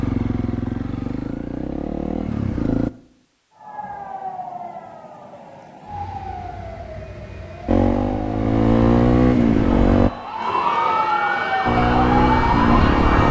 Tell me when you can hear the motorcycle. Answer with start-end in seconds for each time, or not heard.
0.0-2.9, 7.7-10.1, 11.7-13.2.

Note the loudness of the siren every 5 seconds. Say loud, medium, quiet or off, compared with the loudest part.
quiet, quiet, loud.